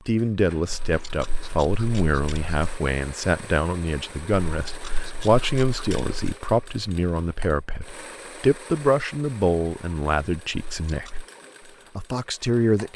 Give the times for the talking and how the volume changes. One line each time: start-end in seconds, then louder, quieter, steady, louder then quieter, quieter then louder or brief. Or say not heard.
0.1-11.2 steady
11.9-12.9 brief.